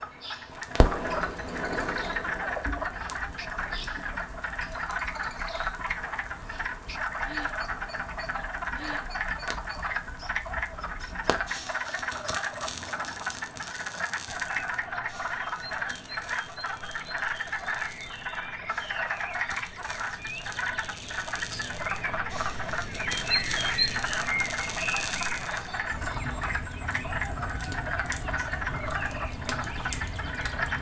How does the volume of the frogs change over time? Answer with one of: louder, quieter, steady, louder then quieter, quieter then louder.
steady.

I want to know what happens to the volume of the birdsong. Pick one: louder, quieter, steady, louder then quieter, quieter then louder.
louder then quieter.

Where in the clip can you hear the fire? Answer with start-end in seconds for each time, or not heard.
0.5-30.7.